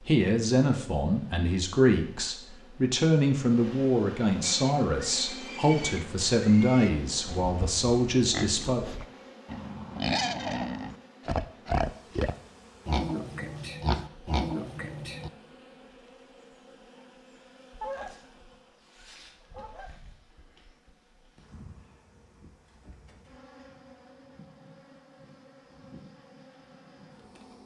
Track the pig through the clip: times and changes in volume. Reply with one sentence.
You can hear the pig from 4.4 to 15.3 s, getting louder.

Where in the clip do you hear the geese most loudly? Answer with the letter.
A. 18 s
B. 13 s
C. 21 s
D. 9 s
A.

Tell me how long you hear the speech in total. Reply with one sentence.
You can hear the speech for 9 seconds altogether.